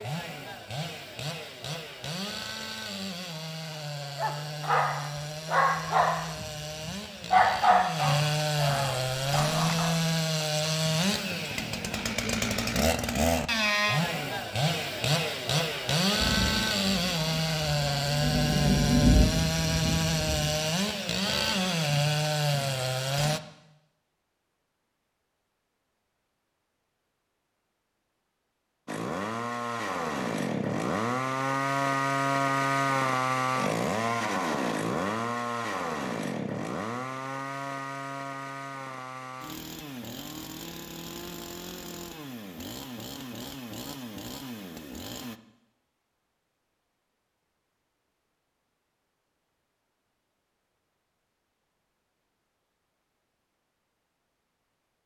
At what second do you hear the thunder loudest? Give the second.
19 s.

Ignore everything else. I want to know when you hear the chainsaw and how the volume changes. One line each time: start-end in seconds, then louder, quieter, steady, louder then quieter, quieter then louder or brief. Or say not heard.
0.0-23.4 louder
28.9-45.4 quieter.